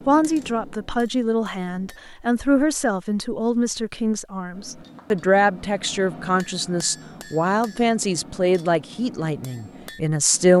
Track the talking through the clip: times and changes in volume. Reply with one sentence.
You can hear the talking from 0.1 to 10.5 s, at a steady volume.